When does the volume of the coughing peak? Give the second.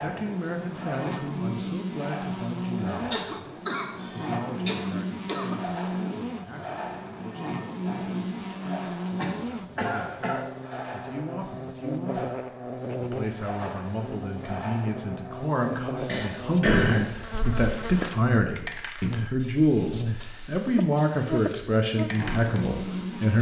17 s.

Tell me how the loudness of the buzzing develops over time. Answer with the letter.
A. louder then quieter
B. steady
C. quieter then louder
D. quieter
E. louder
B.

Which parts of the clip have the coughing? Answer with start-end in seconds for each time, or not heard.
3.1-5.6, 9.2-10.4, 16.1-18.0.